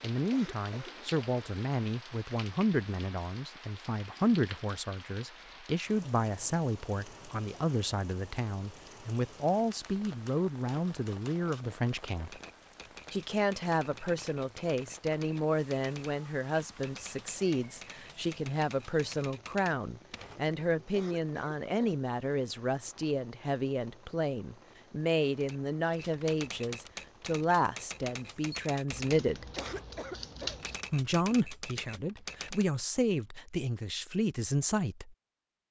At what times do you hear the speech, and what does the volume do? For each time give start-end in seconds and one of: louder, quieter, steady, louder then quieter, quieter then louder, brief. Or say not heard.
0.0-12.4 steady
13.1-29.4 steady
30.9-35.6 steady.